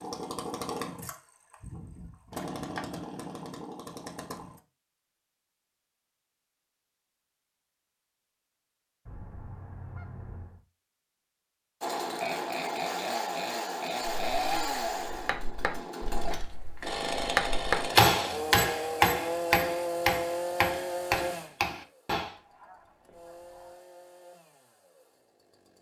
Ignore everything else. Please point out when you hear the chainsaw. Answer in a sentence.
The chainsaw can be heard from 0.0 to 4.6 s and from 11.8 to 25.7 s.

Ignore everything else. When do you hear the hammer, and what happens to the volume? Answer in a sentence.
You can hear the hammer from 14.1 to 22.4 s, getting louder then quieter.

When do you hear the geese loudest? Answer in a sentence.
The loudest moment of the geese is at 10 seconds.